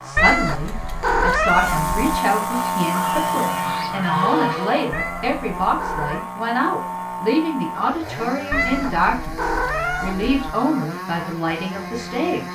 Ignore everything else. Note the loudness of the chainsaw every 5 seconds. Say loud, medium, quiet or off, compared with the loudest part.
loud, medium, medium.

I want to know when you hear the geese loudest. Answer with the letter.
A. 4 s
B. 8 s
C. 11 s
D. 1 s
A.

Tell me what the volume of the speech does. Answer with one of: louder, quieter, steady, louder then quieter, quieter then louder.
steady.